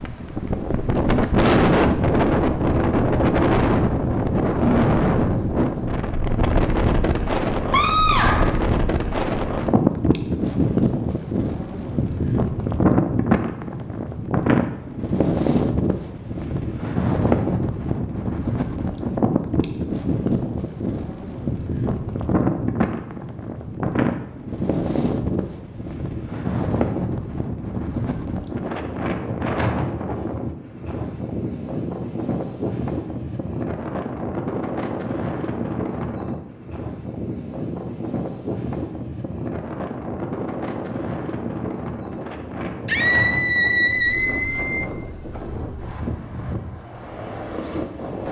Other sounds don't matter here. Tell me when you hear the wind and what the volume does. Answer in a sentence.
The wind can be heard from 0.0 to 48.2 s, getting quieter.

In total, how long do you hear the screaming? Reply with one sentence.
The screaming can be heard for 3 seconds in total.